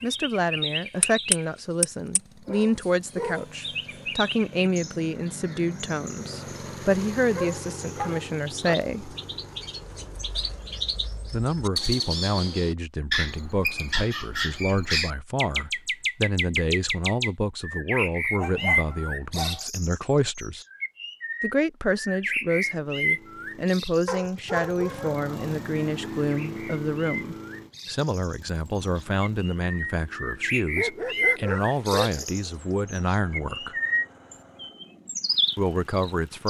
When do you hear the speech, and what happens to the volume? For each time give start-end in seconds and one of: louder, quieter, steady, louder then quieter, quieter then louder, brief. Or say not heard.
0.0-9.2 steady
11.2-20.6 steady
21.4-33.8 steady
35.5-36.4 brief.